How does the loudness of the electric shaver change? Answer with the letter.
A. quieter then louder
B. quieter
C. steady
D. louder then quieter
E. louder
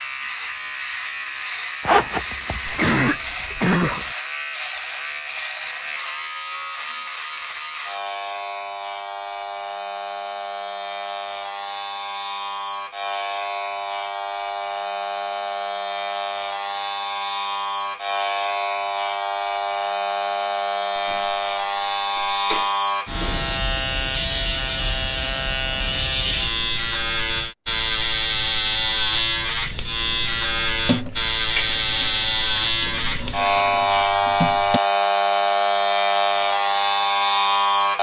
E.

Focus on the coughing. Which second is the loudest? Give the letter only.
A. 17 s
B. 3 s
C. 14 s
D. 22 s
B.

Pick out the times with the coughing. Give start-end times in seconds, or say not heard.
2.6-4.1, 20.9-21.4, 22.1-22.7.